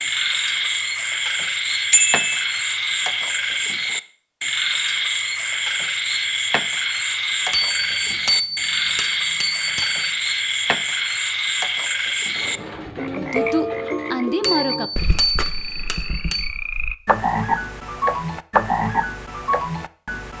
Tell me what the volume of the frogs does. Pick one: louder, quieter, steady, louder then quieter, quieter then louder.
steady.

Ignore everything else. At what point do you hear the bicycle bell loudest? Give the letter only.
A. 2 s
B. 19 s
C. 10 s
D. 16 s
A.